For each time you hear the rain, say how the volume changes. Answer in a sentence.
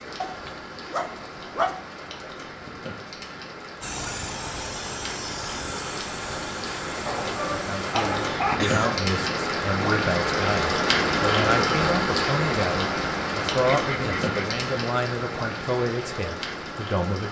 The rain can be heard from 0.0 to 17.2 s, getting louder then quieter.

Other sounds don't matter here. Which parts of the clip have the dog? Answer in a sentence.
The dog can be heard from 0.2 to 1.8 s, from 7.0 to 9.1 s and from 13.6 to 14.4 s.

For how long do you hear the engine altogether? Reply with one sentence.
You can hear the engine for 4 seconds altogether.